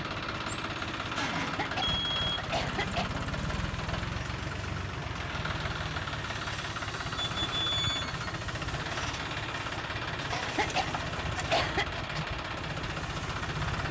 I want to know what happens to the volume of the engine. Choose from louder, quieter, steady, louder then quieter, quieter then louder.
steady.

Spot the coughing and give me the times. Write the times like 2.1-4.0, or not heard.
1.4-3.1, 10.3-12.1.